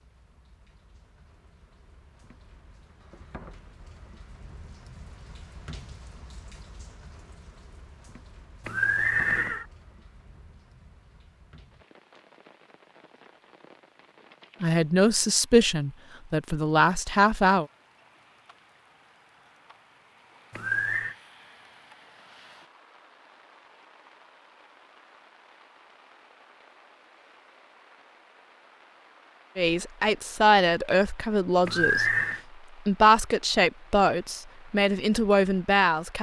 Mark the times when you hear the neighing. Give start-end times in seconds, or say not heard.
8.7-9.7, 20.5-21.1, 31.6-32.4.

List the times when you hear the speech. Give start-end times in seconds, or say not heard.
14.6-17.6, 29.6-32.1, 32.9-36.1.